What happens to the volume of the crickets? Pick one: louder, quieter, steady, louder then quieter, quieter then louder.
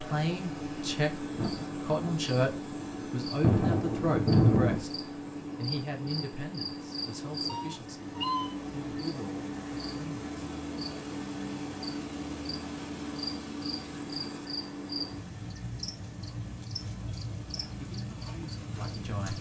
steady.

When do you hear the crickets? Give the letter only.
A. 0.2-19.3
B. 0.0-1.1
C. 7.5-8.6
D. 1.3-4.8
A.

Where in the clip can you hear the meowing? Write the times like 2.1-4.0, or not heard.
7.5-8.6.